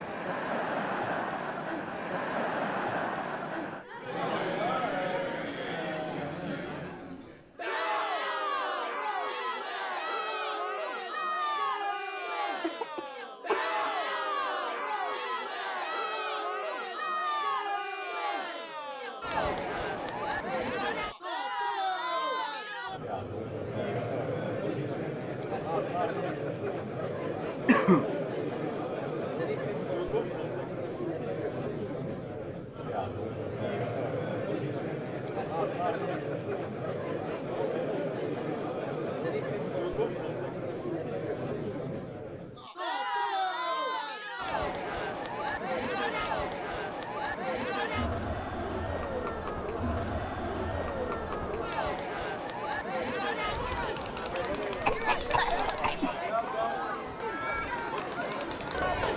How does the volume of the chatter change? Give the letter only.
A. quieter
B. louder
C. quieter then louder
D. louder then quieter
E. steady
E.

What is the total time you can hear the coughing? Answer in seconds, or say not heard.
3 s.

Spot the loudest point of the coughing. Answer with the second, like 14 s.
28 s.